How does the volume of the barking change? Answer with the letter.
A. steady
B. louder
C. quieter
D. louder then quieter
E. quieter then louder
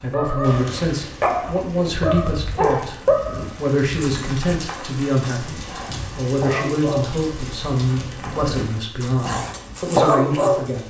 E.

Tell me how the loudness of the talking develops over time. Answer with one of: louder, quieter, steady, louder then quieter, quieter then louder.
steady.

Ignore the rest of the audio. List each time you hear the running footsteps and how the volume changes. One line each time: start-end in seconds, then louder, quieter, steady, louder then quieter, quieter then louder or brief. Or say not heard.
not heard.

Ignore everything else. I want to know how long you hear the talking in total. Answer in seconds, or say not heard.
11 s.